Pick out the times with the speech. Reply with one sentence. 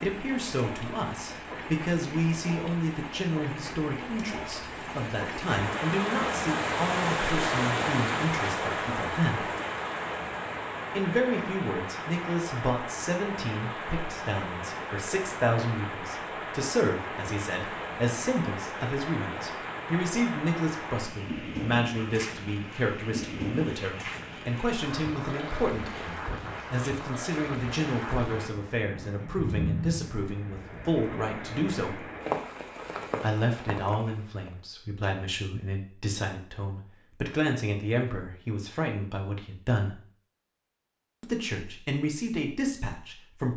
The speech can be heard from 0.0 to 9.5 s, from 10.9 to 32.0 s, from 33.2 to 40.0 s and from 41.2 to 43.5 s.